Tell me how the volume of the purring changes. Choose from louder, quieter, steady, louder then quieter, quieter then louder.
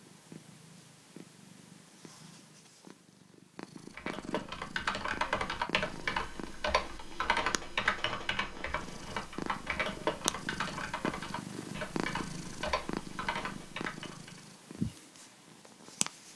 louder.